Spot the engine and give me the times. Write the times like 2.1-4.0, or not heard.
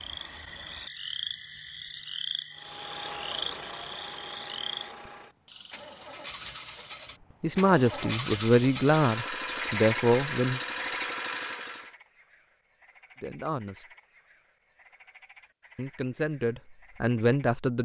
2.5-11.9.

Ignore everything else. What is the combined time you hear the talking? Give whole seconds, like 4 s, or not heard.
6 s.